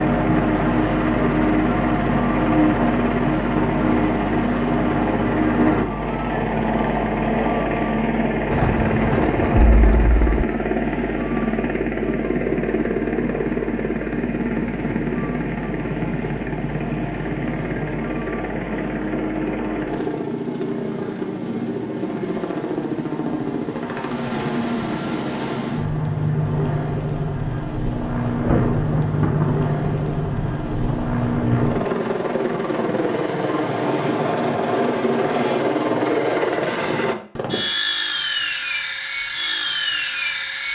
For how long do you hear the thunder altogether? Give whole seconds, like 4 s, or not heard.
7 s.